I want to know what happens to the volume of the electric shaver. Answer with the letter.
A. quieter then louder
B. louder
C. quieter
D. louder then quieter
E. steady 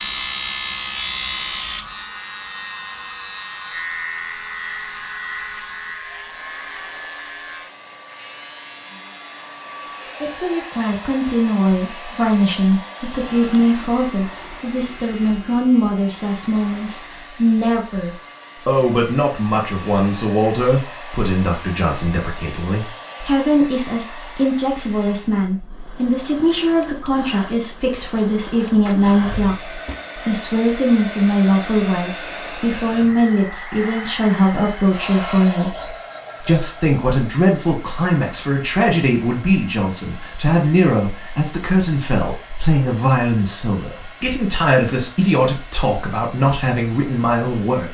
C.